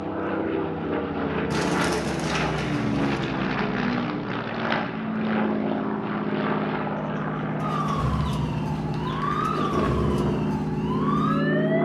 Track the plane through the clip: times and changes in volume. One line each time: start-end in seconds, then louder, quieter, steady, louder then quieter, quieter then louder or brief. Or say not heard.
0.0-11.8 steady.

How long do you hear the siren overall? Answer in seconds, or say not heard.
4 s.